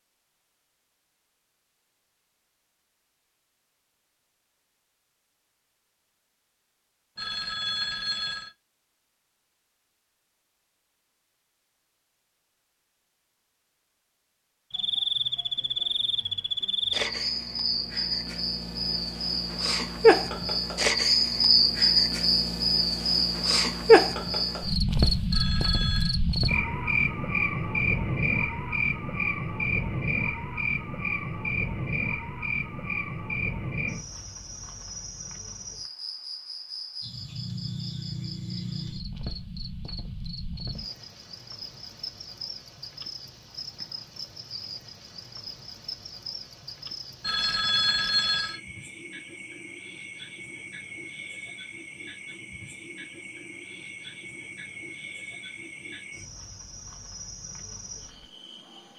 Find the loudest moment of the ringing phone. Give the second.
48 s.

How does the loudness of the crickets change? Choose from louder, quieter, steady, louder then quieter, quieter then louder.
quieter.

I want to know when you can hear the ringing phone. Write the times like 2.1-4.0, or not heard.
7.2-8.5, 25.3-26.2, 47.2-48.6.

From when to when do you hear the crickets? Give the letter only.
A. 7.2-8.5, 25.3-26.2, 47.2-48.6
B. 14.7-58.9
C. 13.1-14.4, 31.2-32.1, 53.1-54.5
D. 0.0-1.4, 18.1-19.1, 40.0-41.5
B.